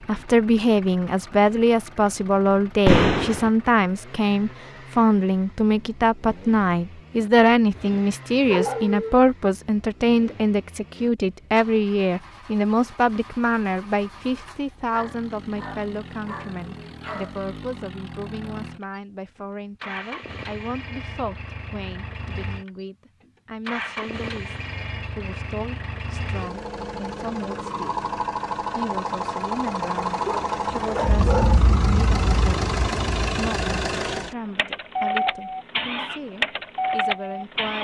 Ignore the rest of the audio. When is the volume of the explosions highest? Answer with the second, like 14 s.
3 s.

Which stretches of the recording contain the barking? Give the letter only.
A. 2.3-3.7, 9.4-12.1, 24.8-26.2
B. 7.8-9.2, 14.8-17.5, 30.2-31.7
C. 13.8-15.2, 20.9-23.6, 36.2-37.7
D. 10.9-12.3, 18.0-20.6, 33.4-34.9
B.